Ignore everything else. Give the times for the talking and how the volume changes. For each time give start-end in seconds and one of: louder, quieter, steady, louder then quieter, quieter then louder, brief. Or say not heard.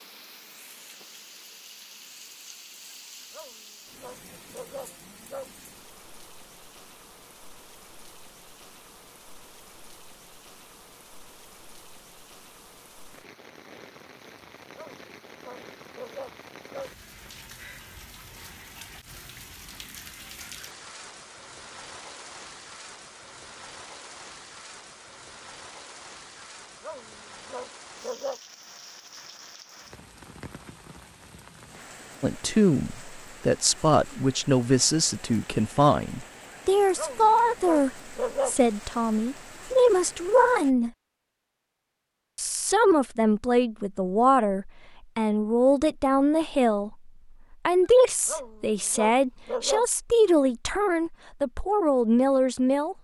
32.2-40.9 steady
42.4-52.9 steady.